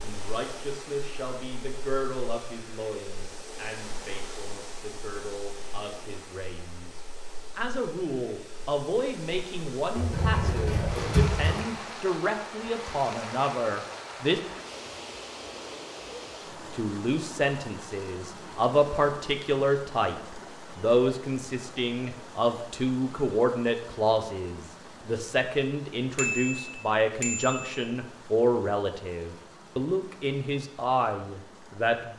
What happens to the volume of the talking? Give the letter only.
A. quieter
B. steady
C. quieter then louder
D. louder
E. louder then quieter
D.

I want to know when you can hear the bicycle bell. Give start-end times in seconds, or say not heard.
26.1-27.9.